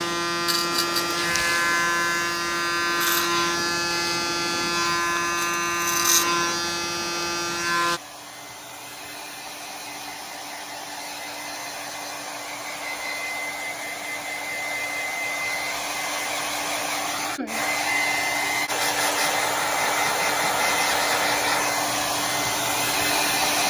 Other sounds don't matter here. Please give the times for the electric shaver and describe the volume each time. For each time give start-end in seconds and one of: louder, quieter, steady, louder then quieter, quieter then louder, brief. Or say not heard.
0.0-8.0 steady.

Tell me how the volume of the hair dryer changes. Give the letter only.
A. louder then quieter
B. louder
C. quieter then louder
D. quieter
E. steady
B.